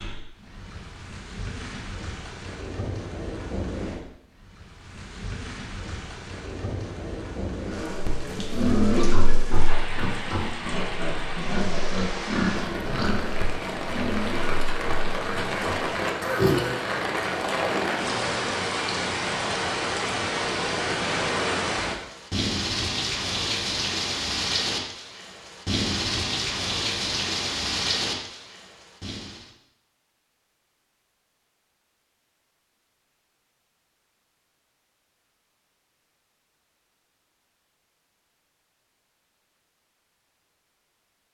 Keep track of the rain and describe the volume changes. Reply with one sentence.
The volume of the rain goes up.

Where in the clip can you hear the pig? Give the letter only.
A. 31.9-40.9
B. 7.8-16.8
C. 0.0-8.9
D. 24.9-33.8
B.